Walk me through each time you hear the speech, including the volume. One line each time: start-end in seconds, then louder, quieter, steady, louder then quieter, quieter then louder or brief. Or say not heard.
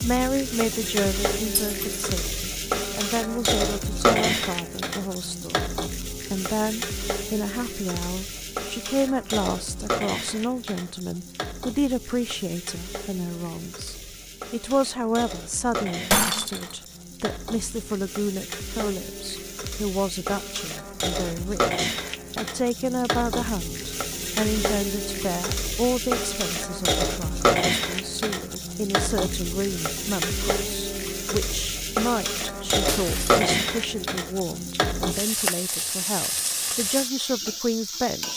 0.0-38.3 steady.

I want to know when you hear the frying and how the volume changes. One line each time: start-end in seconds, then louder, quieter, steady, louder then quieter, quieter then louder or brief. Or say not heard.
0.0-38.3 quieter then louder.